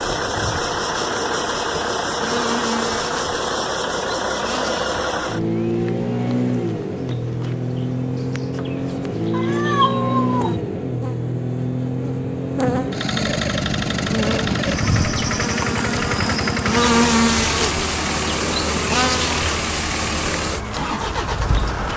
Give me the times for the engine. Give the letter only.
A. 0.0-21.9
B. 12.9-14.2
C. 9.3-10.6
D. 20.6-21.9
A.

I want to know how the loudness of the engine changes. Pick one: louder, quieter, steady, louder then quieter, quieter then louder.
steady.